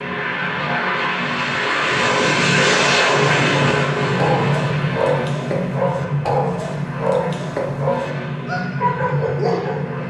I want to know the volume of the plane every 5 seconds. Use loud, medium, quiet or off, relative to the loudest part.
loud, medium.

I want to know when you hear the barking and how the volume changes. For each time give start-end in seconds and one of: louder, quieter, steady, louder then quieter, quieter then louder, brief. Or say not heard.
4.2-9.9 steady.